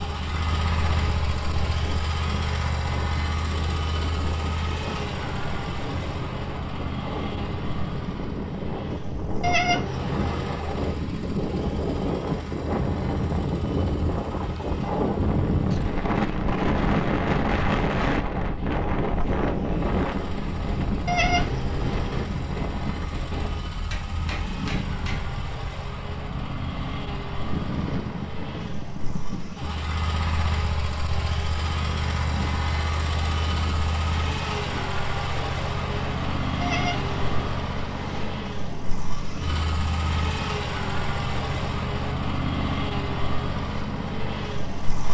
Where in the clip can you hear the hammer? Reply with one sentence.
The hammer can be heard from 23.9 to 25.4 s.